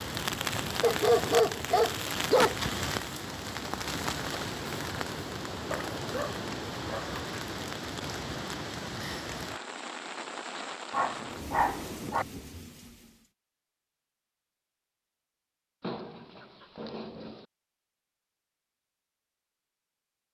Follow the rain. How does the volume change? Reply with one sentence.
The loudness of the rain goes down.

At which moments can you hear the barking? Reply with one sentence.
You can hear the barking from 0.8 to 2.5 s, from 5.7 to 7.2 s, from 10.9 to 12.2 s and from 15.8 to 17.4 s.